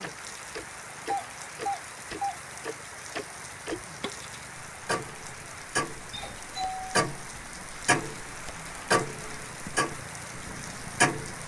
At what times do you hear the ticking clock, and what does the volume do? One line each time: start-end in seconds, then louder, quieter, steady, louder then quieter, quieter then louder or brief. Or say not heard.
0.0-11.3 louder.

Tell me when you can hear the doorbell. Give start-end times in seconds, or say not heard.
1.1-2.4, 6.1-6.8.